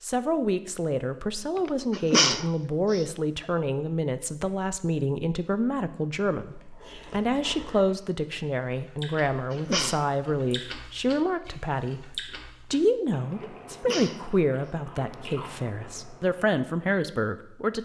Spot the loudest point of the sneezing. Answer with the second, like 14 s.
2 s.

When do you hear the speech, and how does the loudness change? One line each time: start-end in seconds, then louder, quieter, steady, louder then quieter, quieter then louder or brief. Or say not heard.
0.0-17.7 steady.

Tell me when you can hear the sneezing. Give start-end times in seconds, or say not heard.
1.6-3.0, 9.5-10.1, 13.4-14.2.